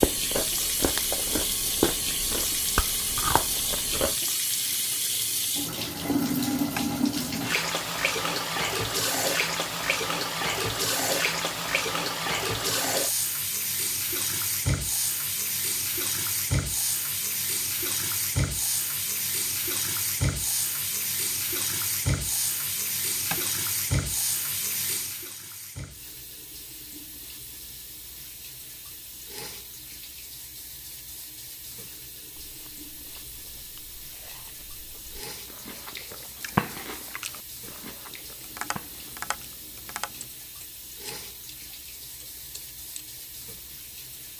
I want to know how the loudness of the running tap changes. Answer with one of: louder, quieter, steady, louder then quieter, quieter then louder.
quieter.